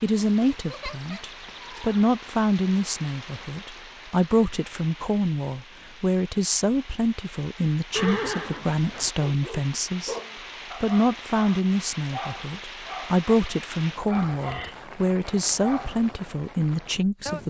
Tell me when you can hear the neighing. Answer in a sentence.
The neighing can be heard from 0.2 to 2.1 s, from 8.0 to 9.1 s and from 14.3 to 14.8 s.